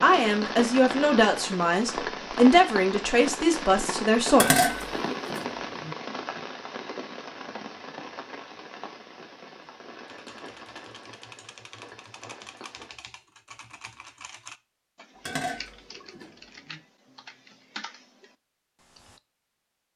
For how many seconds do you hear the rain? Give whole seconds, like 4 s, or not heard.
13 s.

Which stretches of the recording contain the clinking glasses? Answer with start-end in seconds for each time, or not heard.
4.3-6.0, 15.2-16.8.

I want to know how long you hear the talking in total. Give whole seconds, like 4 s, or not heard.
5 s.